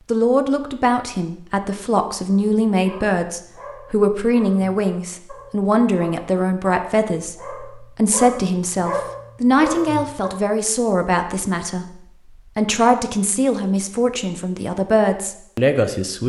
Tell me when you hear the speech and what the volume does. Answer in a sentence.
The speech can be heard from 0.1 to 16.2 s, at a steady volume.